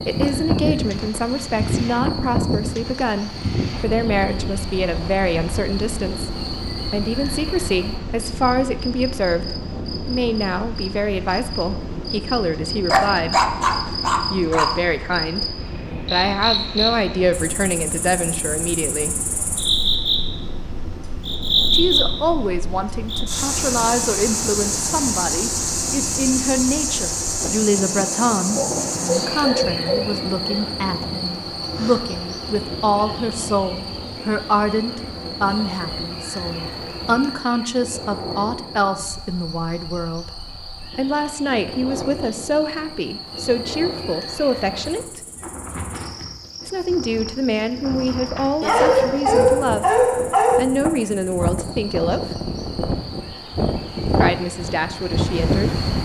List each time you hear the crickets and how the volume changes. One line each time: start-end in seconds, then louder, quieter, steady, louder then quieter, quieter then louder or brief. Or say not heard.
0.0-55.9 louder then quieter.